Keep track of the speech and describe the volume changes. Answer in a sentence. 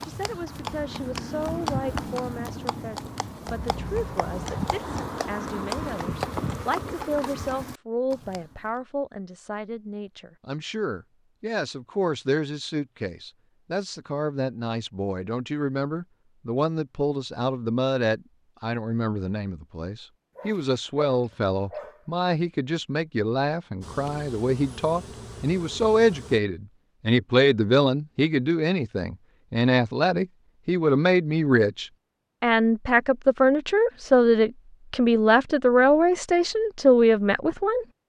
The volume of the speech goes up.